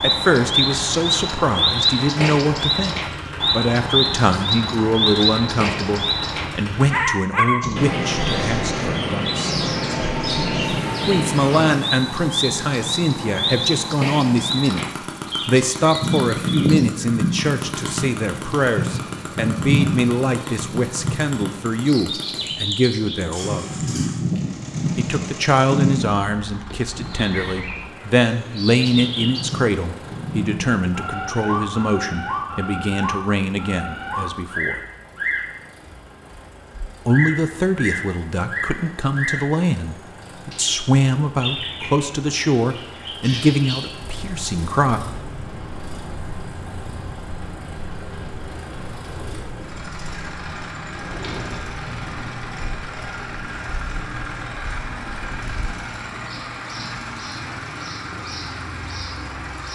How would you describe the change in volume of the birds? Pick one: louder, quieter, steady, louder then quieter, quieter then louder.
quieter.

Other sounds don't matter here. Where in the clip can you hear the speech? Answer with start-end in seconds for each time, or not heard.
0.0-9.6, 11.1-14.8, 15.4-23.7, 24.9-34.8, 37.0-45.0.